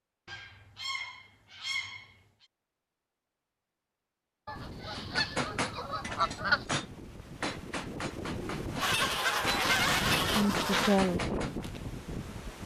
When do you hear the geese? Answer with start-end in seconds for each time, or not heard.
0.2-2.5, 4.5-6.7, 8.8-11.0.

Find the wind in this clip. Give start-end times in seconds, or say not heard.
4.5-12.6.